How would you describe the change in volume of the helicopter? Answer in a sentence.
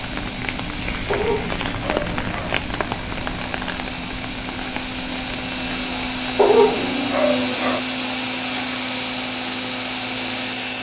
The loudness of the helicopter goes up.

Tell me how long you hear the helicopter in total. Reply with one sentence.
You can hear the helicopter for 11 seconds altogether.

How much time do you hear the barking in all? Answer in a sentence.
The barking can be heard for 3 seconds in total.